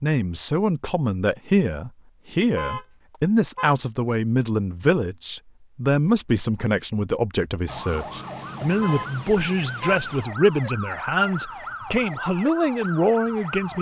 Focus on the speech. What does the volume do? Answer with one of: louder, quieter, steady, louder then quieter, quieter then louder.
steady.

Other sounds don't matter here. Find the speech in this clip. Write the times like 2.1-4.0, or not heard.
0.0-13.7.